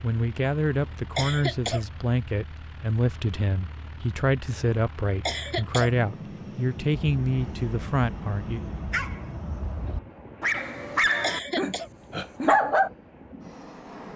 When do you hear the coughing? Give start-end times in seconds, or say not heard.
1.1-1.9, 5.2-5.9, 11.2-11.9.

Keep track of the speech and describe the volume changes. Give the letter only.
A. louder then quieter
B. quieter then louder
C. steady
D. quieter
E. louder
C.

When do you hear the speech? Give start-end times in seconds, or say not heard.
0.0-8.6.